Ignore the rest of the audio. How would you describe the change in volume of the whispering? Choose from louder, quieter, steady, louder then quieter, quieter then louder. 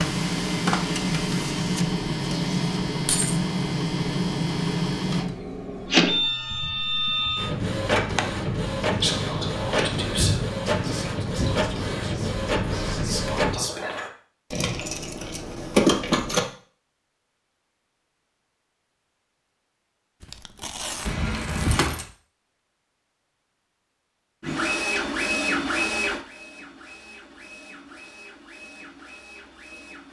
quieter then louder.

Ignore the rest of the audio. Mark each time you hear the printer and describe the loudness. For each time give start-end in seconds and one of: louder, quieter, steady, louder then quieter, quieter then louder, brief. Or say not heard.
0.0-13.6 steady
24.4-30.0 quieter.